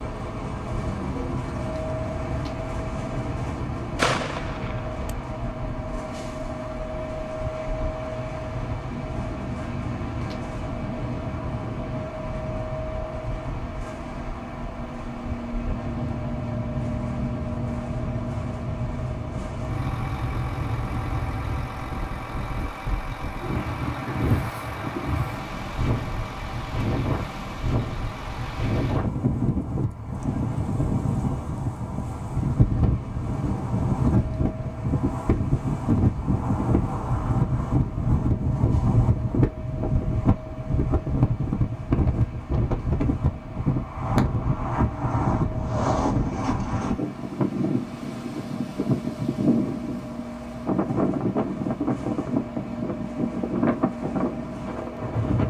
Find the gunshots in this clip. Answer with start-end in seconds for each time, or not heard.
4.0-5.2.